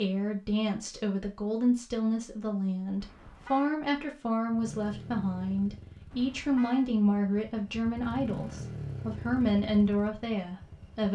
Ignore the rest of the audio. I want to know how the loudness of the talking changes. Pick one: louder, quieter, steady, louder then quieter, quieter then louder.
steady.